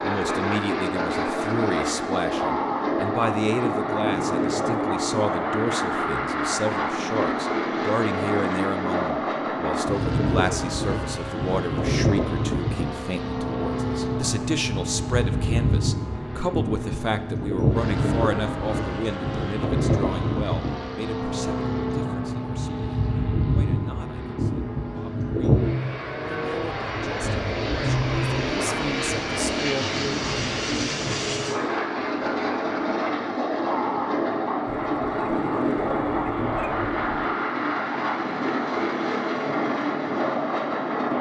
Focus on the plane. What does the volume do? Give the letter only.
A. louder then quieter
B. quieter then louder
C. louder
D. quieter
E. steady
E.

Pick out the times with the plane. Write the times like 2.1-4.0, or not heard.
0.0-41.1.